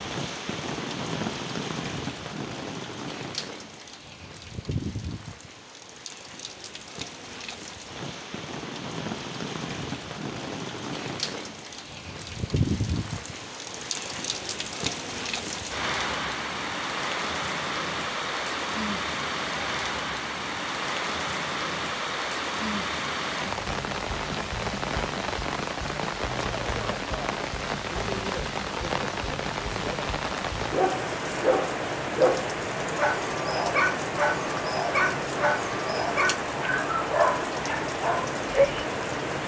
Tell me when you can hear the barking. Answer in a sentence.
You can hear the barking from 30.7 to 38.9 s.